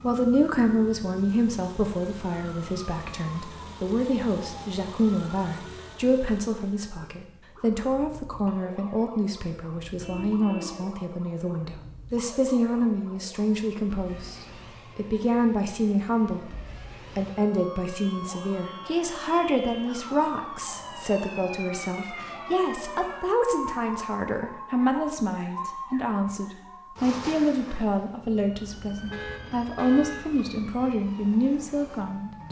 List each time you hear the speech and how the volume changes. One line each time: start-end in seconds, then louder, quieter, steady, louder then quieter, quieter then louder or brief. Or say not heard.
0.0-32.4 steady.